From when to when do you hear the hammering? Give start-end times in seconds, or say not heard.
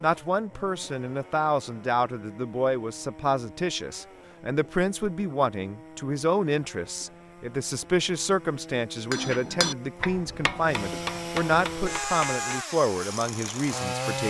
9.1-12.4.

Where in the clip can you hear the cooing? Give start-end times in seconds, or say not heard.
not heard.